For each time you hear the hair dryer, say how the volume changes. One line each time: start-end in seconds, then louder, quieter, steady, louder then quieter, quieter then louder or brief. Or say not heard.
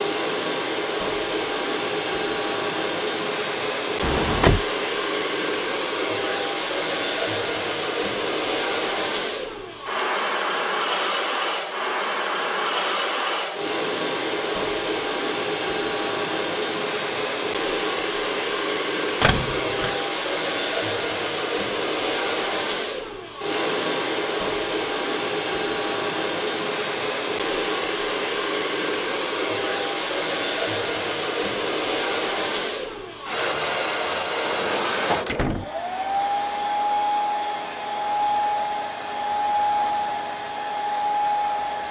0.0-41.8 steady.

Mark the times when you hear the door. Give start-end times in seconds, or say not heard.
4.0-4.7, 19.2-19.9, 34.4-35.7.